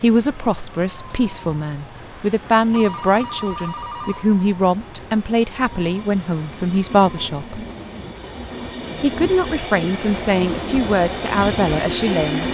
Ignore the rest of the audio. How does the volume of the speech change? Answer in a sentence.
The loudness of the speech stays about the same.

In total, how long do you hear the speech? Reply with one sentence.
You can hear the speech for 11 seconds altogether.